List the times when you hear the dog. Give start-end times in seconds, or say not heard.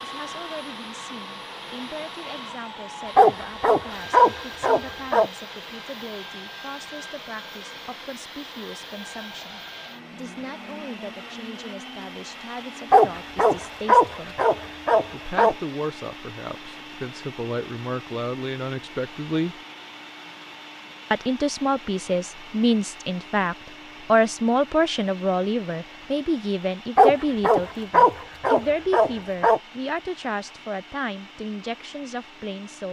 3.1-5.3, 12.9-15.6, 26.9-29.6.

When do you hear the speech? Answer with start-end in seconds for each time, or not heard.
0.0-14.4, 15.1-19.6, 21.1-32.8.